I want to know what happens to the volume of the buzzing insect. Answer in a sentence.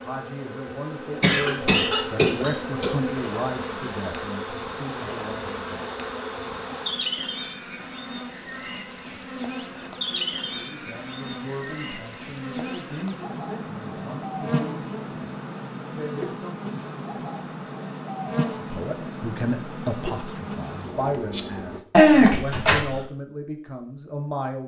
The loudness of the buzzing insect stays about the same.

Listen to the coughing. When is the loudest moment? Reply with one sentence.
The volume of the coughing peaks at 22 seconds.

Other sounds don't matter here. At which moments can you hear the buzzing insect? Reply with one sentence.
You can hear the buzzing insect from 0.0 to 21.8 s.